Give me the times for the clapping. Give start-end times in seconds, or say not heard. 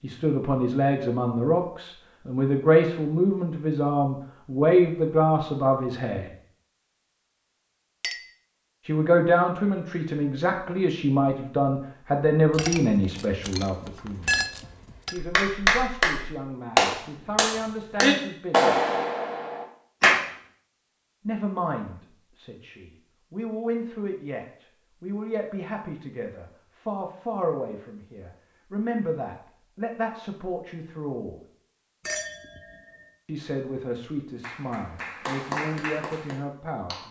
15.2-20.2, 34.4-37.0.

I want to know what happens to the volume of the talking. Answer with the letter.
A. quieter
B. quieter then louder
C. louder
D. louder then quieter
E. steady
A.